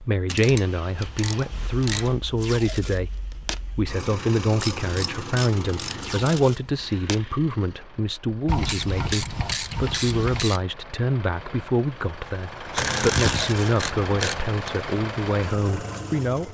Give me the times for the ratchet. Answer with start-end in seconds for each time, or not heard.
0.3-2.1, 4.5-6.7, 8.4-10.6, 12.7-14.7.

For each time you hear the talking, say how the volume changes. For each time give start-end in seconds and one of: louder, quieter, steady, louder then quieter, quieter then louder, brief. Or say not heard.
0.0-16.5 steady.